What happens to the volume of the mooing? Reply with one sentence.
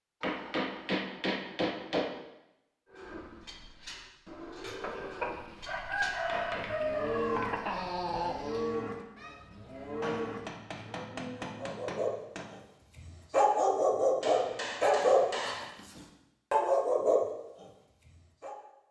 The volume of the mooing goes up.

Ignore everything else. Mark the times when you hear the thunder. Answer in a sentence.
You can't hear the thunder here.